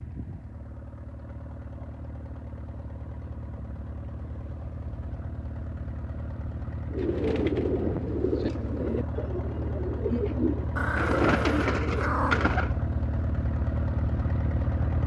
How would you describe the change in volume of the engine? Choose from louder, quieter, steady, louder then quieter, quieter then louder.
louder.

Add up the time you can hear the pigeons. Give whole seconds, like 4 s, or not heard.
6 s.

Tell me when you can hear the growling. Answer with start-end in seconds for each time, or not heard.
10.8-12.5.